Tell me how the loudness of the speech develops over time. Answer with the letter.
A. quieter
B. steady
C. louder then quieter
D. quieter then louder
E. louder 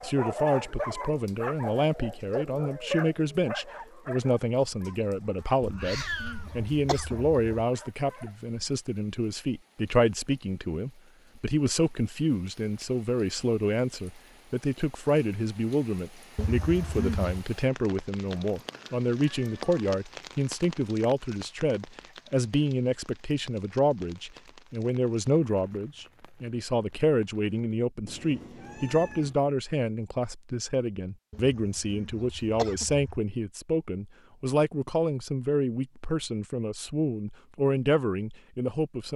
B.